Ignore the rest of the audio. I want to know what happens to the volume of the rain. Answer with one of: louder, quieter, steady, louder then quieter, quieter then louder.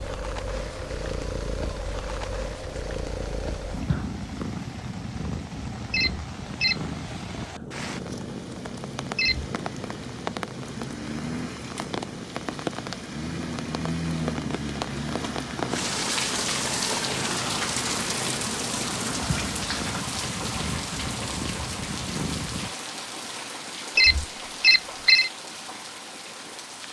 louder then quieter.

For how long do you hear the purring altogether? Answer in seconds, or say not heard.
23 s.